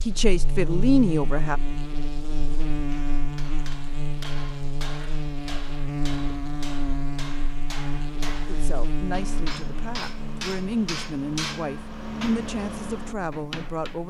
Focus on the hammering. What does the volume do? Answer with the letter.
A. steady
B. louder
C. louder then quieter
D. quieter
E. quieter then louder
B.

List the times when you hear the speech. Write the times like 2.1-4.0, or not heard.
0.1-1.6, 8.4-14.0.